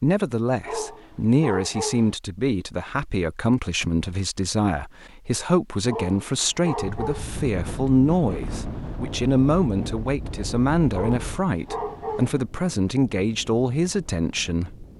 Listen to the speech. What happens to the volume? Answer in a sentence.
The loudness of the speech stays about the same.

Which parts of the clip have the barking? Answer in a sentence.
You can hear the barking from 0.7 to 2.1 s, from 5.8 to 7.3 s and from 10.9 to 12.4 s.